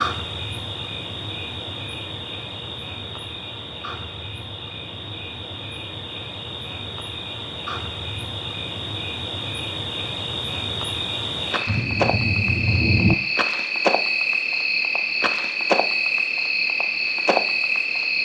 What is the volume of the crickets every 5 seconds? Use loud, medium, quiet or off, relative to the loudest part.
medium, medium, loud, loud.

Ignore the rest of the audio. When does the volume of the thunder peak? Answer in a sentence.
The volume of the thunder peaks at 13 seconds.